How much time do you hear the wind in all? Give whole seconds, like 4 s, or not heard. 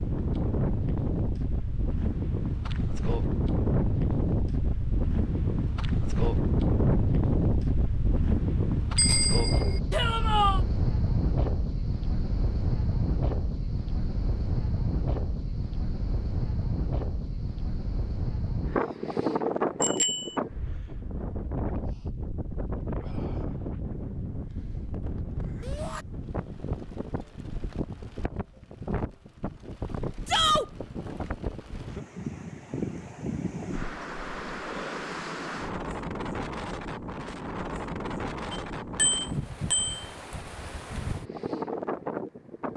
43 s.